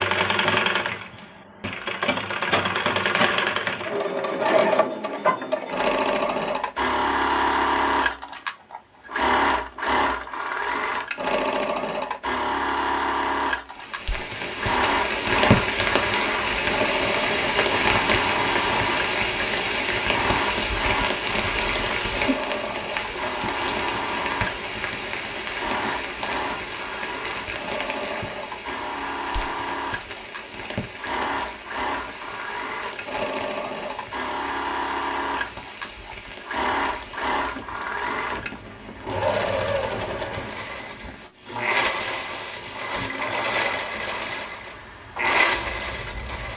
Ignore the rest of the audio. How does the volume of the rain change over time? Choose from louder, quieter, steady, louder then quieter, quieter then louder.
quieter.